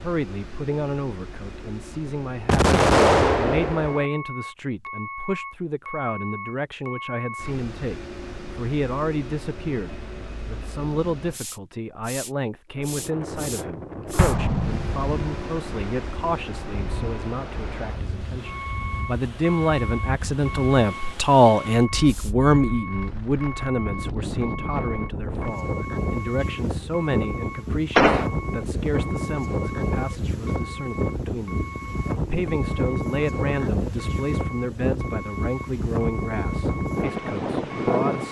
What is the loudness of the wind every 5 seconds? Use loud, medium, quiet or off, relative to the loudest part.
off, off, medium, medium, medium, loud, loud, loud.